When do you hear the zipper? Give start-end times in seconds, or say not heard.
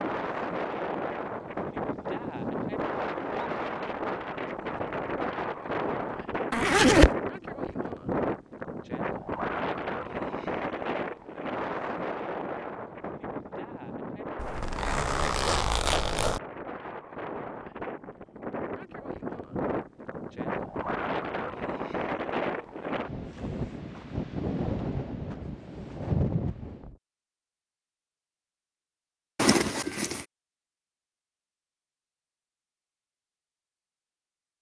6.5-7.1, 14.3-16.4, 29.4-30.2.